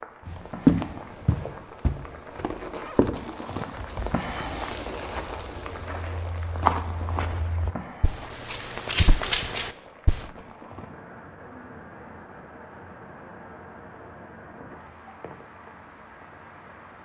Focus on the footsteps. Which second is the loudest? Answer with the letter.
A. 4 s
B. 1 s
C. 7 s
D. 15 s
B.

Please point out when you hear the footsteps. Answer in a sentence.
The footsteps can be heard from 0.2 to 10.2 s.